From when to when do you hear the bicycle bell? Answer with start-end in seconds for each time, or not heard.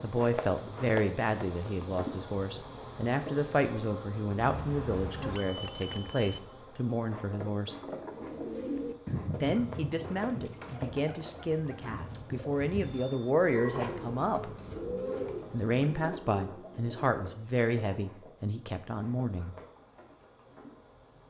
4.4-6.4, 12.8-13.9.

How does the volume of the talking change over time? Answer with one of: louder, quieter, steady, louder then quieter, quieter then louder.
steady.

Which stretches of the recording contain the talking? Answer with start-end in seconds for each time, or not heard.
0.0-7.8, 9.4-14.5, 15.5-19.6.